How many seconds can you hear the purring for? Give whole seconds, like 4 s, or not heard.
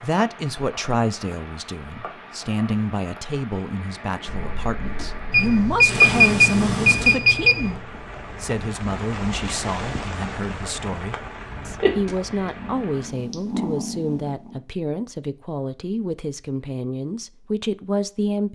6 s.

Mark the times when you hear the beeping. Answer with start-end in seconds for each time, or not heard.
5.3-7.8.